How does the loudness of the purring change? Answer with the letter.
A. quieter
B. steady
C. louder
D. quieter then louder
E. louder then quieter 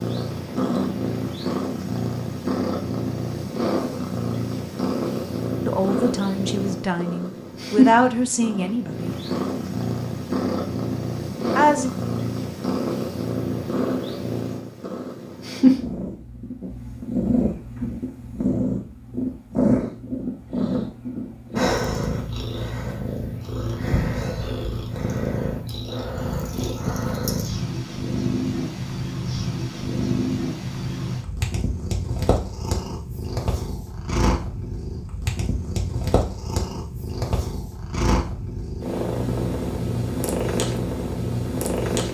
B.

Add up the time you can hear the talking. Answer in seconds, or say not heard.
4 s.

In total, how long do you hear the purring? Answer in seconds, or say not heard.
42 s.